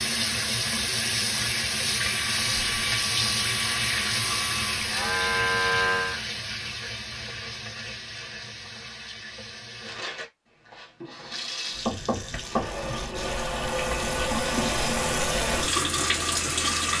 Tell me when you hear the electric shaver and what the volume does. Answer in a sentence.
You can hear the electric shaver from 2.0 to 6.2 s, getting louder.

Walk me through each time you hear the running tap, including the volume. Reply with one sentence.
You can hear the running tap from 0.0 to 16.9 s, getting quieter then louder.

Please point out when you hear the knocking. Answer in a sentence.
You can hear the knocking from 11.8 to 12.8 s.